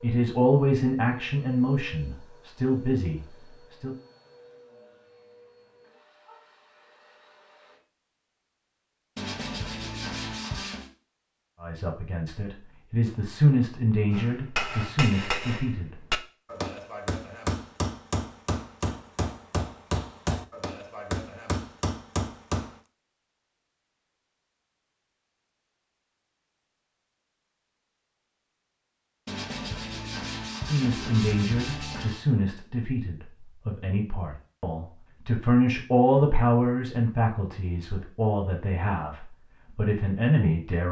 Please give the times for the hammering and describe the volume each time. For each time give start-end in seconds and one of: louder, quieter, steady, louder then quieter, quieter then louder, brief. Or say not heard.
14.1-22.8 steady.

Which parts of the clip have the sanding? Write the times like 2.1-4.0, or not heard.
9.2-10.9, 29.2-32.2.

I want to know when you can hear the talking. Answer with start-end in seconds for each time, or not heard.
0.0-4.0, 11.6-15.9, 30.6-40.8.